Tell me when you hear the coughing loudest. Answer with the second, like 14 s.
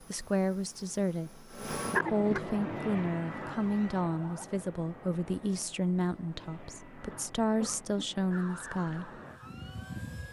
2 s.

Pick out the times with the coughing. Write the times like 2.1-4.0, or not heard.
1.9-2.4, 7.0-8.1.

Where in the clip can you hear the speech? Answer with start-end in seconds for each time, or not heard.
0.0-9.2.